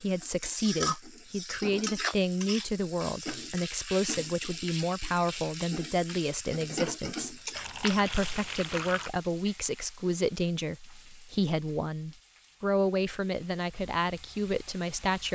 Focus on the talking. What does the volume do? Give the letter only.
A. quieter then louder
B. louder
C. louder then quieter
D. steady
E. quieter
D.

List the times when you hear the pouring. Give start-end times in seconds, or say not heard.
7.5-9.1.